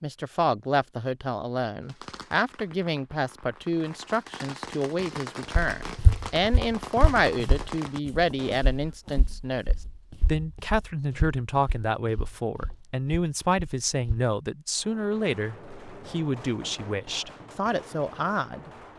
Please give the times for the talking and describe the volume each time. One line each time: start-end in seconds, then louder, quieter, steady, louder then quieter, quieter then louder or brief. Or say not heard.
0.0-18.7 steady.